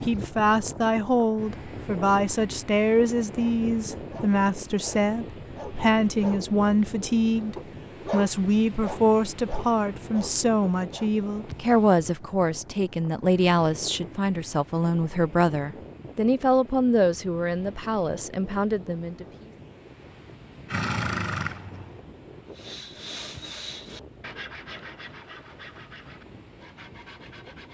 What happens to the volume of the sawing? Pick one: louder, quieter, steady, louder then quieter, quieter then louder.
quieter.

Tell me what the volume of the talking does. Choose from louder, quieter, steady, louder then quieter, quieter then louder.
steady.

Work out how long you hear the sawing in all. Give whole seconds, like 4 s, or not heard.
5 s.